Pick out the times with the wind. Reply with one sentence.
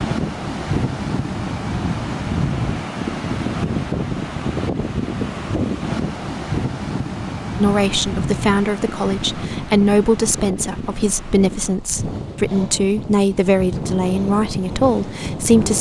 The wind can be heard from 0.0 to 15.7 s.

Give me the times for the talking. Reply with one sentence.
The talking can be heard from 7.5 to 15.7 s.